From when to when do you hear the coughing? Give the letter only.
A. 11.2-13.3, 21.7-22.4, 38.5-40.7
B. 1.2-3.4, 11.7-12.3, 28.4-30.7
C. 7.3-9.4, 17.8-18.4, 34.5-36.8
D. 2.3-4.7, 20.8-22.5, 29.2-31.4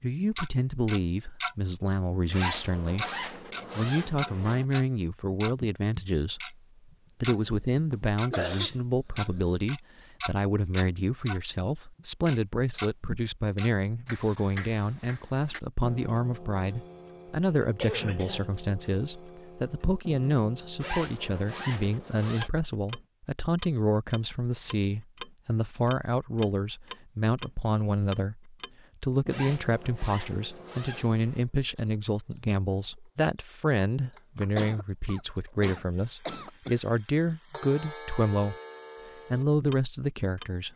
C.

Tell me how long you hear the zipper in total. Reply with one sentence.
You can hear the zipper for 6 seconds altogether.